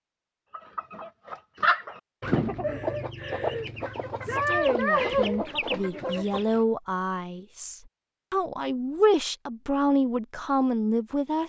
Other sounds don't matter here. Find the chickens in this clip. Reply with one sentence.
The chickens can be heard from 0.5 to 6.6 s.